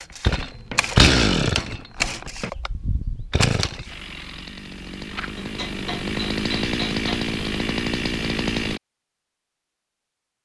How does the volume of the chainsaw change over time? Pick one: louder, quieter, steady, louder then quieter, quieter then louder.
quieter then louder.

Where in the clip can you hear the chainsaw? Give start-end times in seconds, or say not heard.
0.0-8.8.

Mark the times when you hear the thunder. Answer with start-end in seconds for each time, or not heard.
not heard.